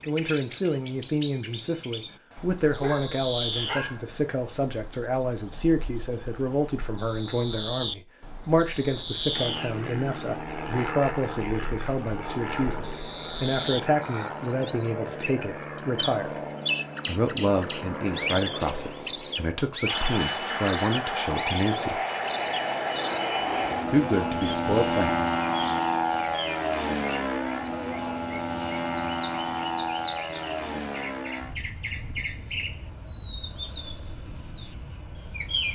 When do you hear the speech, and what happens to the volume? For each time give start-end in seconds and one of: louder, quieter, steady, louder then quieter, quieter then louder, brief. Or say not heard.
0.1-16.4 steady
17.1-22.0 steady
23.9-25.1 brief.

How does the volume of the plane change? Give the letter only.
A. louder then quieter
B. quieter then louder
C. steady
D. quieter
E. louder
A.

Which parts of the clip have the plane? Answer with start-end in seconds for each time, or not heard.
9.3-35.7.